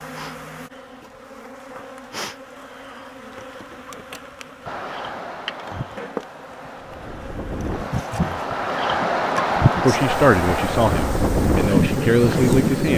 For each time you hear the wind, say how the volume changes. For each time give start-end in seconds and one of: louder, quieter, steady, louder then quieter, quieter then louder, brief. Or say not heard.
4.7-12.9 louder.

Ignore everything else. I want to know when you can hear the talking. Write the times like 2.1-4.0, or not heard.
9.8-12.9.